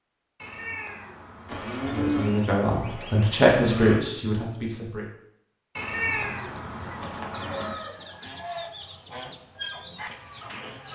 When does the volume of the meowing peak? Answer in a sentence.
The loudest moment of the meowing is at 6 seconds.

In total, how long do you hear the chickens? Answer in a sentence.
The chickens can be heard for 5 seconds in total.